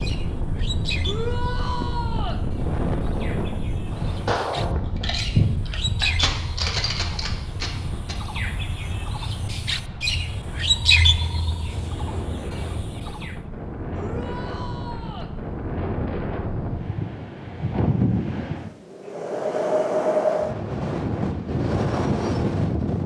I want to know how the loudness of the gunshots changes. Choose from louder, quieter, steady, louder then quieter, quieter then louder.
louder then quieter.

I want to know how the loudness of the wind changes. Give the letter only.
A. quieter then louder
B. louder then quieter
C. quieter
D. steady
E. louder
A.